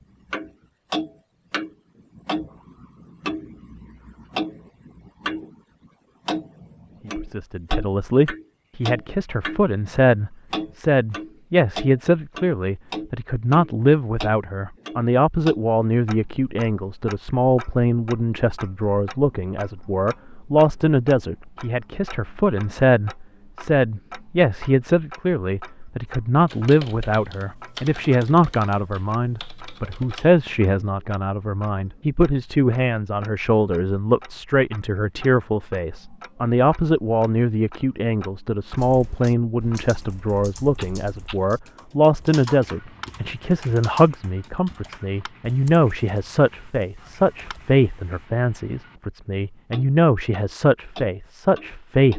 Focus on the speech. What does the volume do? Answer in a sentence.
The loudness of the speech stays about the same.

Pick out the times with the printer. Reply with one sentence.
You can't hear the printer here.